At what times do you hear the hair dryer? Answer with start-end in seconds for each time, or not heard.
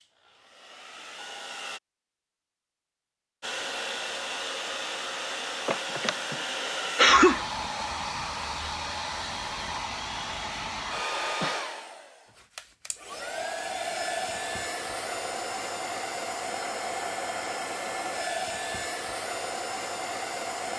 0.0-1.8, 3.4-20.7.